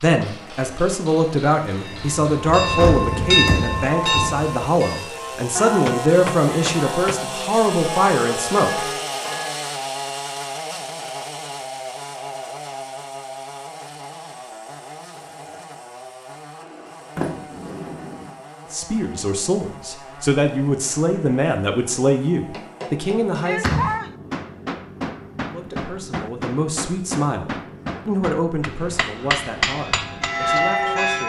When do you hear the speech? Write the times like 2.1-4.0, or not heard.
0.0-8.8, 18.7-23.7, 25.5-31.2.